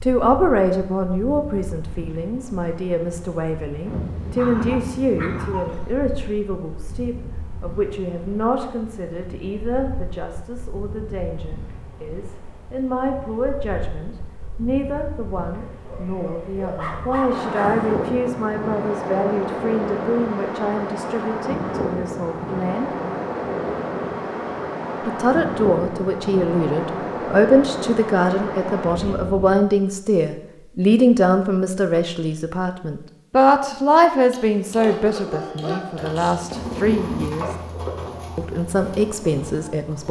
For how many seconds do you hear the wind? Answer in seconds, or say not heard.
30 s.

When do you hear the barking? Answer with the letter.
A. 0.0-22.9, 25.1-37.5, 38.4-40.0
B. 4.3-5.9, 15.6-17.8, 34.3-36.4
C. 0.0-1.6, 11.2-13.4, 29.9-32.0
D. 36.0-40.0
B.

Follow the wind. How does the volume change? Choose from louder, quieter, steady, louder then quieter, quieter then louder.
quieter then louder.